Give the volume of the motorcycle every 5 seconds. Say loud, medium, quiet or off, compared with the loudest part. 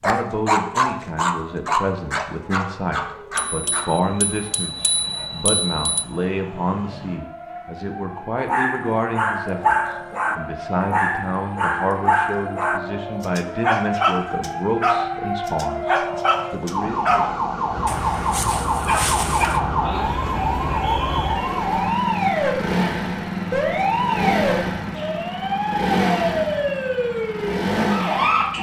off, off, off, medium, loud, loud.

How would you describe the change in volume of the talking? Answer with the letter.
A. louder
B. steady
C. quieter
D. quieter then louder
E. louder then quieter
B.